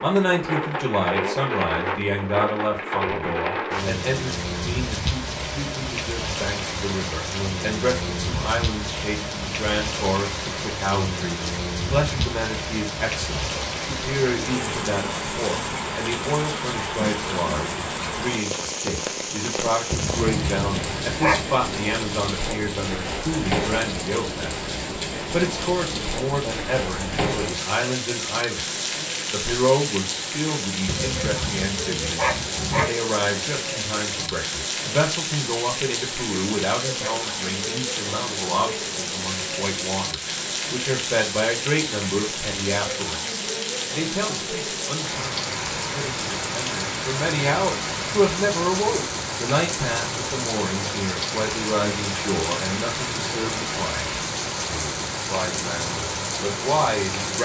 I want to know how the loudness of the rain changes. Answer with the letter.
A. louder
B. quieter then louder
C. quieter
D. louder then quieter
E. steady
E.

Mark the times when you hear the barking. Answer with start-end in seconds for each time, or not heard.
19.9-21.4, 30.9-32.9.